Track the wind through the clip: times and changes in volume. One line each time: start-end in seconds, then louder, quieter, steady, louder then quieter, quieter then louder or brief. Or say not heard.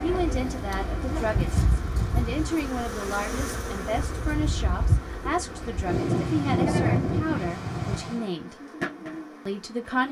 0.0-8.2 quieter then louder.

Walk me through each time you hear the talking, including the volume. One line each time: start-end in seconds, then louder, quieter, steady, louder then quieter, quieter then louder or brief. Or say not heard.
0.0-8.6 steady
9.4-10.0 brief.